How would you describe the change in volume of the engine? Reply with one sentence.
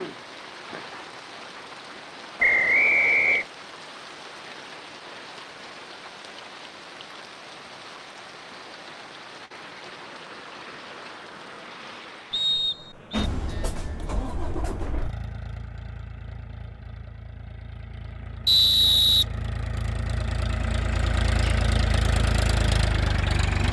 The loudness of the engine goes down, then up.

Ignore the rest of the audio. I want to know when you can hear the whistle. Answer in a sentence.
You can hear the whistle from 2.4 to 3.5 s, from 12.3 to 13.3 s and from 18.4 to 19.2 s.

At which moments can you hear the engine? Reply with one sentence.
The engine can be heard from 13.1 to 23.6 s.